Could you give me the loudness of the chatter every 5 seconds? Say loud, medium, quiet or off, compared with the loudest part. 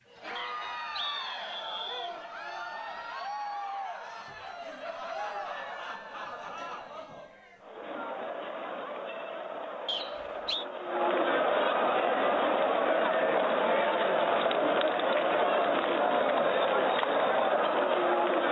quiet, quiet, loud, loud.